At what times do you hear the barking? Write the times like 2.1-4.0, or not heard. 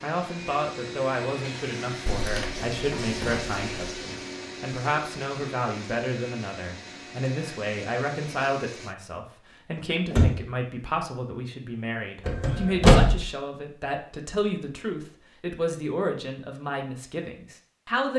not heard.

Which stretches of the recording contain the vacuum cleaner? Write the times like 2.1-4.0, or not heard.
0.0-8.9.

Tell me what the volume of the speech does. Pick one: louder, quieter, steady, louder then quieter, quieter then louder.
steady.